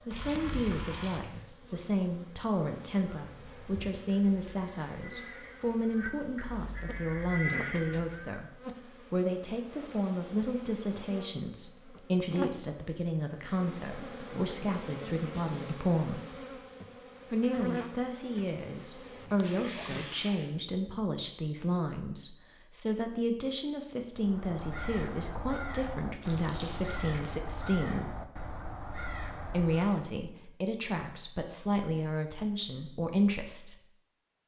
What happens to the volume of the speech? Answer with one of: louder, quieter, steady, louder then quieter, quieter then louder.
steady.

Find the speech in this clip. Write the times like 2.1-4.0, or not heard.
0.1-16.2, 17.3-28.1, 29.4-33.8.